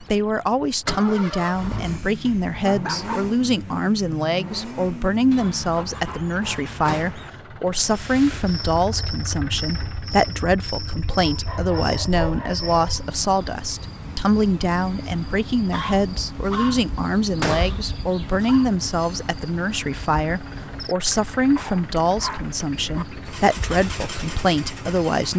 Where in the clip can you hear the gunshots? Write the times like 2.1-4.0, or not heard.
6.8-7.2, 17.4-17.9.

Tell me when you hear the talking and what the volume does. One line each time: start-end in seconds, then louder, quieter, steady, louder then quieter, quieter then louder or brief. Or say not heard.
0.0-25.3 steady.